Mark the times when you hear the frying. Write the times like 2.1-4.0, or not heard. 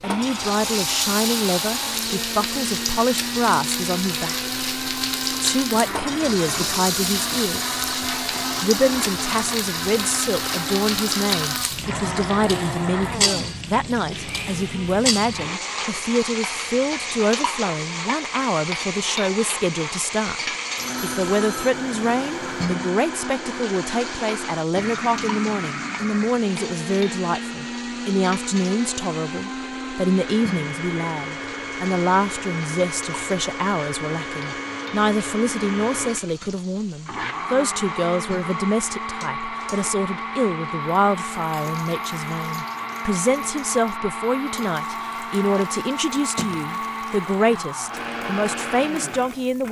0.1-49.6.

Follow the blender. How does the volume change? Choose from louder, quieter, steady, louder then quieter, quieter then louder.
steady.